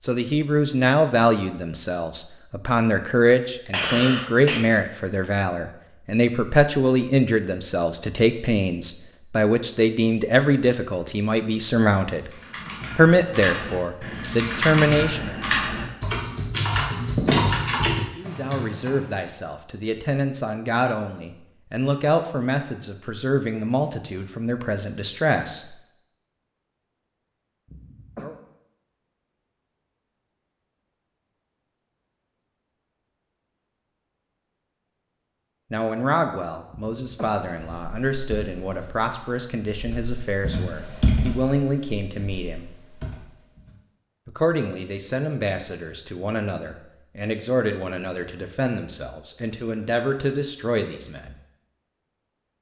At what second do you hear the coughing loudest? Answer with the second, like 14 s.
4 s.